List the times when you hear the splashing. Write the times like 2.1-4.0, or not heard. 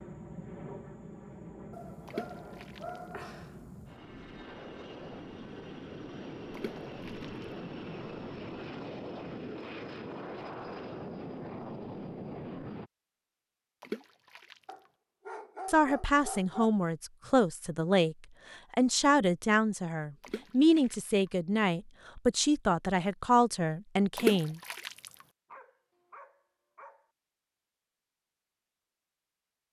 2.0-3.0, 6.5-7.5, 13.8-14.8, 20.2-21.1, 24.1-25.1.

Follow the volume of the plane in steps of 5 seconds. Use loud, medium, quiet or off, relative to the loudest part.
medium, loud, loud, off, off, off.